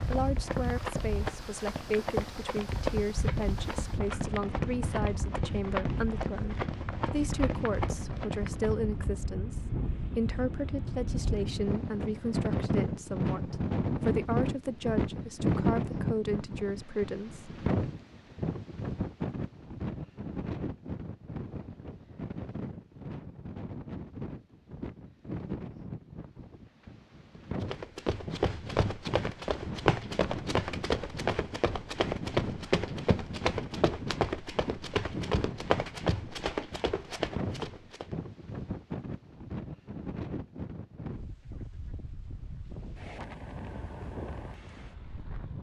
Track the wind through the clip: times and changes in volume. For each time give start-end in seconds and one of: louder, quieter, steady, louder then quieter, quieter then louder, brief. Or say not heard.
0.0-45.5 louder then quieter.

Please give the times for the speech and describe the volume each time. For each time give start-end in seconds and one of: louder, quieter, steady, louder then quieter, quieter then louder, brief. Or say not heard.
0.1-17.5 steady.